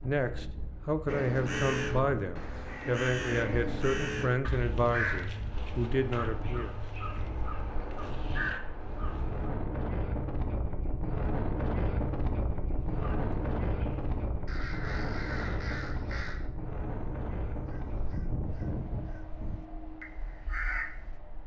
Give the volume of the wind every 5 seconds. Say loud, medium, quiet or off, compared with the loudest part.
medium, medium, loud, medium, quiet.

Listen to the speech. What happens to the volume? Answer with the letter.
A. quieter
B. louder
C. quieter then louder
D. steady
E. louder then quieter
D.